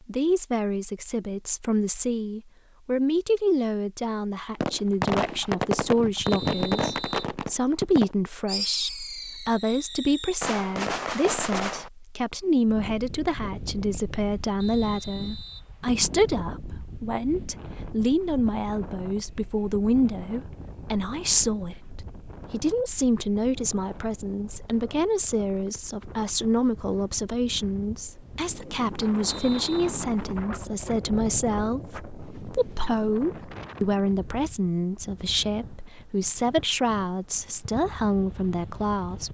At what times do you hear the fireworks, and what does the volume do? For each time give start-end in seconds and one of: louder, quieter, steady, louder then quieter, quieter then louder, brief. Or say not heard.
4.6-11.9 quieter then louder.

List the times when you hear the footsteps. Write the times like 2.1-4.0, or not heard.
not heard.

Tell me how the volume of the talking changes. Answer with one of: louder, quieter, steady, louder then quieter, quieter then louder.
steady.